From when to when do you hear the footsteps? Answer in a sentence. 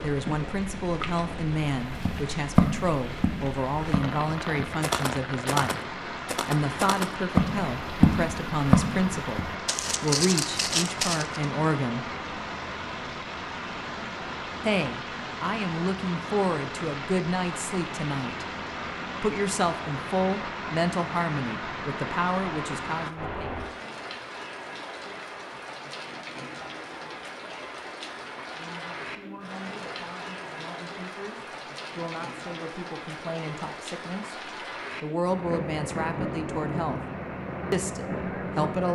The footsteps can be heard from 1.9 to 11.4 s.